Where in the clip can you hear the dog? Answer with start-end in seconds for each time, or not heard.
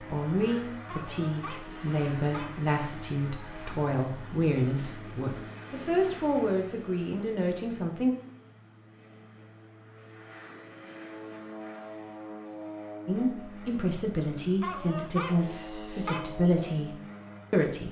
0.8-2.5, 14.6-16.2.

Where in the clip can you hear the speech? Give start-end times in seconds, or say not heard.
0.1-8.2, 13.1-17.8.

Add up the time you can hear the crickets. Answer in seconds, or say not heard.
not heard.